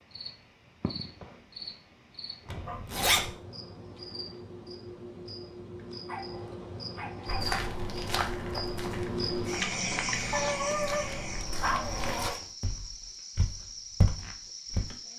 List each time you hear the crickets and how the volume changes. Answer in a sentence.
The crickets can be heard from 0.0 to 15.1 s, getting louder then quieter.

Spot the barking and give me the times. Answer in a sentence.
You can hear the barking from 2.6 to 3.4 s, from 6.0 to 7.5 s and from 10.3 to 12.3 s.